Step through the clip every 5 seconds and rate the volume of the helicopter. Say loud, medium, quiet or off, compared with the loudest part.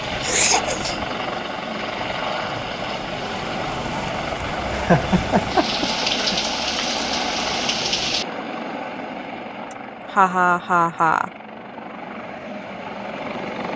loud, loud, medium.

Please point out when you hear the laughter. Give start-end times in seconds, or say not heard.
0.2-1.1, 4.7-6.4, 9.7-11.3.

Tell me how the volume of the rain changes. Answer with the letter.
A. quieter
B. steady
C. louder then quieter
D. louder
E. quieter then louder
D.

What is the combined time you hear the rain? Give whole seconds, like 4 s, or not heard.
8 s.